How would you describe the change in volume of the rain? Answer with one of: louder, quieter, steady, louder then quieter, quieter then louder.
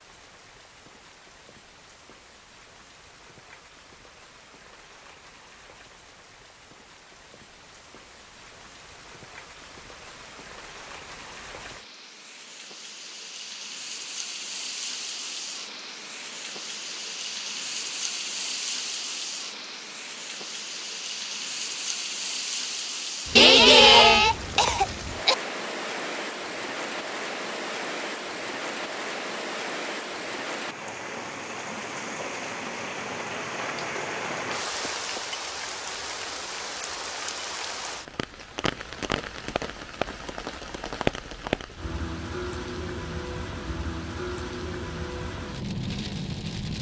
louder.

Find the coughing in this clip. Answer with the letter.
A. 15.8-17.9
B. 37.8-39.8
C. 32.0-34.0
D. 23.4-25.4
D.